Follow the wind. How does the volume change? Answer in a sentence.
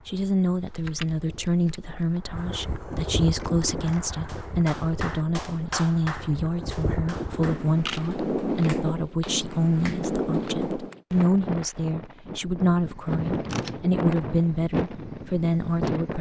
The volume of the wind goes up.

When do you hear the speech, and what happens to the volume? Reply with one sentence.
You can hear the speech from 0.1 to 16.1 s, at a steady volume.